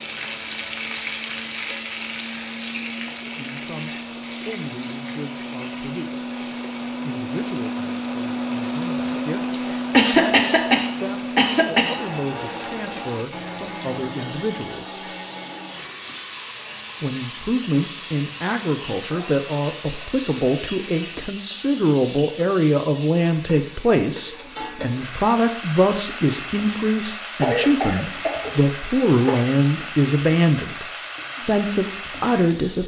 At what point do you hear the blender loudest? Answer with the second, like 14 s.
9 s.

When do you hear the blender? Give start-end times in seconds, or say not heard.
0.0-21.2.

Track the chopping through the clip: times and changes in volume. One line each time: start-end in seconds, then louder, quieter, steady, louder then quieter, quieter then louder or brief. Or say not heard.
not heard.